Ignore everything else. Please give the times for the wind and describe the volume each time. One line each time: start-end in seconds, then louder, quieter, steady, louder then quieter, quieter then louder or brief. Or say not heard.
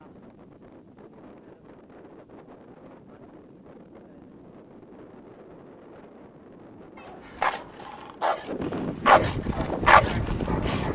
0.0-10.9 louder.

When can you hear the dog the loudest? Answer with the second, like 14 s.
10 s.